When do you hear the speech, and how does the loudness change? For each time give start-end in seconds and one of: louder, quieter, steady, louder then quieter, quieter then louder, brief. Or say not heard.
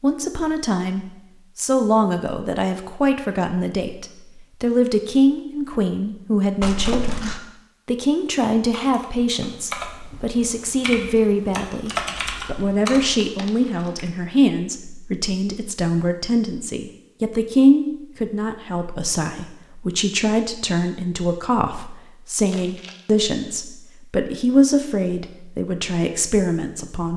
0.0-27.1 steady.